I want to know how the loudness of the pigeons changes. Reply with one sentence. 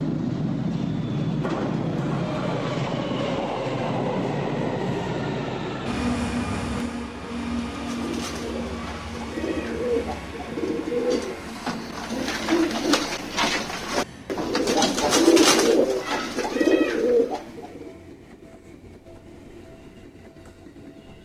The loudness of the pigeons goes up.